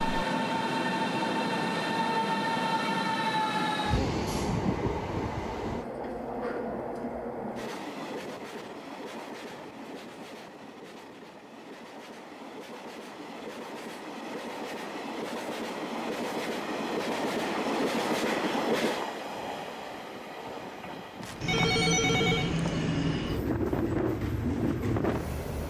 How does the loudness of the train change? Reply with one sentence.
The volume of the train goes down, then up.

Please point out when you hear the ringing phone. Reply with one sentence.
The ringing phone can be heard from 21.2 to 22.9 s.